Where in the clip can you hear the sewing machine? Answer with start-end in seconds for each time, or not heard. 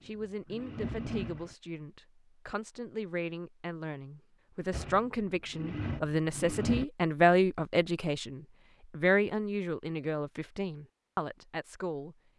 0.0-1.6, 4.7-6.8.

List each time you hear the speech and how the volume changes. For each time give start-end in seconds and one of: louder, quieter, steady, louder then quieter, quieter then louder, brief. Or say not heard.
0.1-12.2 louder then quieter.